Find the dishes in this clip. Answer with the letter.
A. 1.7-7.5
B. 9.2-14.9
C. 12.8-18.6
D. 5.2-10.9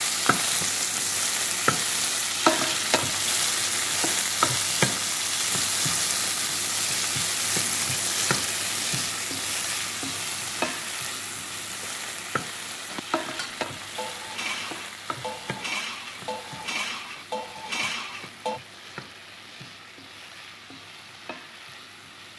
C.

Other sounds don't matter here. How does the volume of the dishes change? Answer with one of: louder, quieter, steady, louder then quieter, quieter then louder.
louder.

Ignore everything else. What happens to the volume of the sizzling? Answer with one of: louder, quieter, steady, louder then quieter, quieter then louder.
quieter.